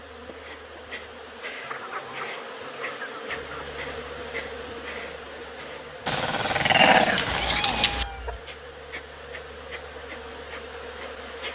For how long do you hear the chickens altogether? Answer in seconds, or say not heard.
4 s.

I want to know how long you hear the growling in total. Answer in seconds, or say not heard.
2 s.